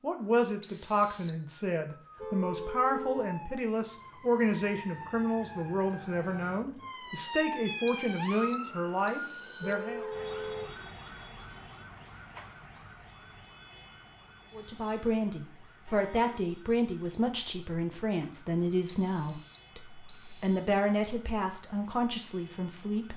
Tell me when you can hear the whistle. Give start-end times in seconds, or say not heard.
0.6-1.3, 7.8-10.3, 18.9-20.6.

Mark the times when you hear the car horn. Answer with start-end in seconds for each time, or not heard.
2.1-3.4, 9.6-10.8, 15.8-16.5.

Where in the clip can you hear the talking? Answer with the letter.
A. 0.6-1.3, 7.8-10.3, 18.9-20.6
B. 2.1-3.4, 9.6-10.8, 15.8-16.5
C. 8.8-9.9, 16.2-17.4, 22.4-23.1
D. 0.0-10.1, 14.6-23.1
D.